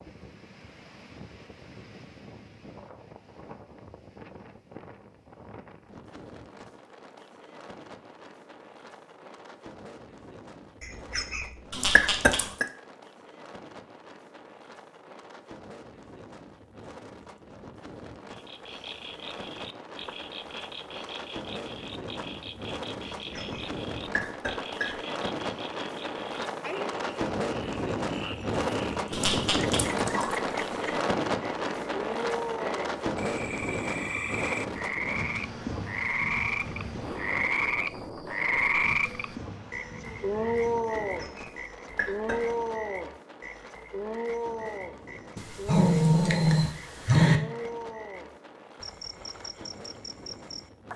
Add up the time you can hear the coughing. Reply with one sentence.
You can hear the coughing for 5 seconds altogether.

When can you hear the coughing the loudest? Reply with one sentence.
The loudest moment of the coughing is at 12 seconds.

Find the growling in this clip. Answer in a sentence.
The growling can be heard from 11.7 to 12.5 s, from 29.1 to 30.4 s and from 45.4 to 47.4 s.